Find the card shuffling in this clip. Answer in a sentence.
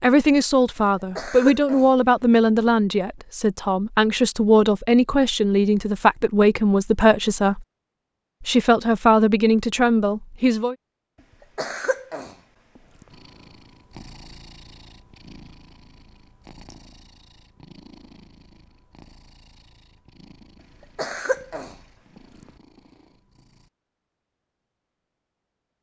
The card shuffling can't be heard in this clip.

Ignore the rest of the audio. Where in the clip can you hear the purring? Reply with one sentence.
You can hear the purring from 13.1 to 23.7 s.